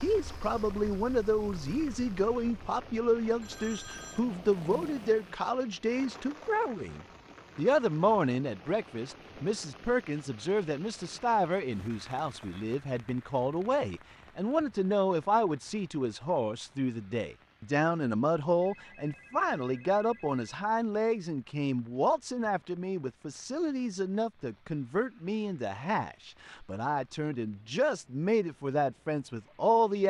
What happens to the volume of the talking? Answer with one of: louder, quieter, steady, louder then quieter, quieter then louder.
steady.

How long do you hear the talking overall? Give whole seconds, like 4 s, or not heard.
30 s.